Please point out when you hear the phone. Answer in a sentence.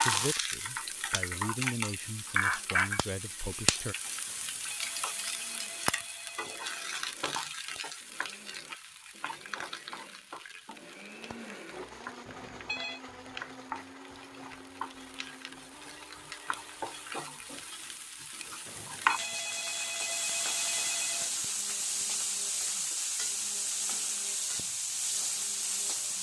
The phone can be heard from 4.2 to 7.0 s, from 12.2 to 13.0 s and from 18.6 to 21.4 s.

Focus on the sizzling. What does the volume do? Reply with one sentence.
The volume of the sizzling goes down, then up.